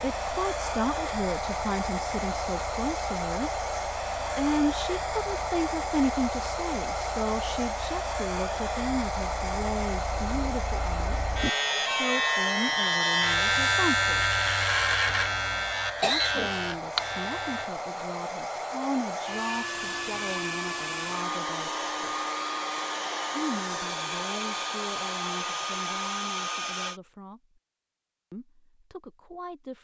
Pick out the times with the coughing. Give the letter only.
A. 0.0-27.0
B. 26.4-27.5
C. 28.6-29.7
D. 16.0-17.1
D.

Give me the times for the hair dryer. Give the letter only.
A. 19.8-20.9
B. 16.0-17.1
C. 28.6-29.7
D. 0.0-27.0
D.